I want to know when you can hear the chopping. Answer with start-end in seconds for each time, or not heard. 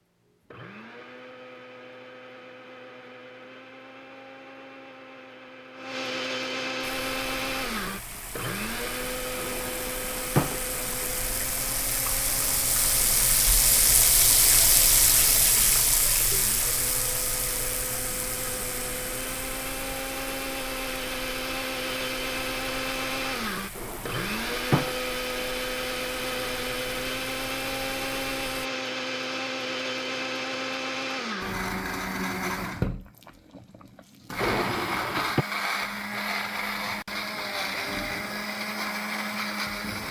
not heard.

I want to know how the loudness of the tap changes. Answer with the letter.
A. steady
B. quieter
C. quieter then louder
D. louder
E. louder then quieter
E.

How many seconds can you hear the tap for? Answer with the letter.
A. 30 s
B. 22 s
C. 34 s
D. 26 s
B.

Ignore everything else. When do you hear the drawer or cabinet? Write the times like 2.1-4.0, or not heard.
9.3-10.7, 23.8-24.9, 34.4-35.5.